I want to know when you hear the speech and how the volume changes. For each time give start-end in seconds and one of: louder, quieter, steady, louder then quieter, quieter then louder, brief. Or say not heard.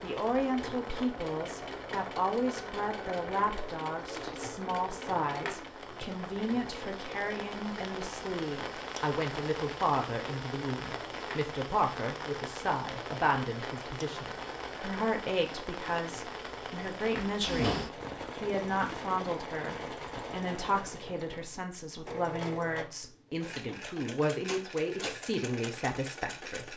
0.0-26.7 steady.